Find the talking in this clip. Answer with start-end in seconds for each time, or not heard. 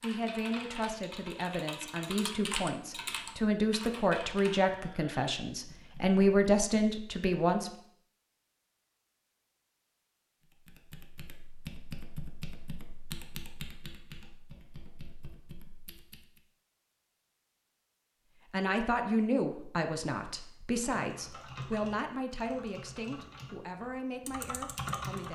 0.0-7.7, 18.5-25.3.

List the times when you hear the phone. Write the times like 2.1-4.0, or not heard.
not heard.